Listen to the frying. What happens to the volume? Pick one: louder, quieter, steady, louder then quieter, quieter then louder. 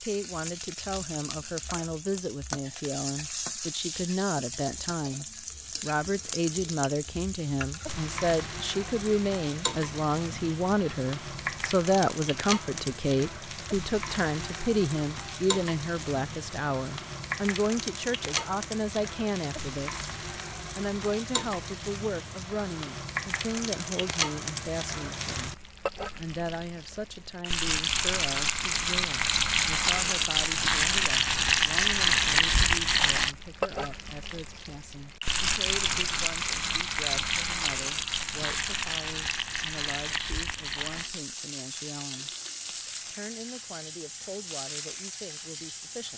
louder then quieter.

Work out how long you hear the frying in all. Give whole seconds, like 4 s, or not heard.
46 s.